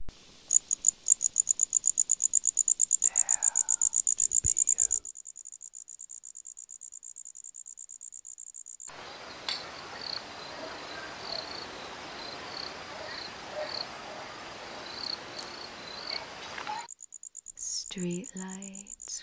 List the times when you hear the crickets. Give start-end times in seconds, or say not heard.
0.0-19.1.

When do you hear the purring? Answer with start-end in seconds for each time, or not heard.
not heard.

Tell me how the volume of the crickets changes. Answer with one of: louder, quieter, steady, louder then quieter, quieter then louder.
quieter.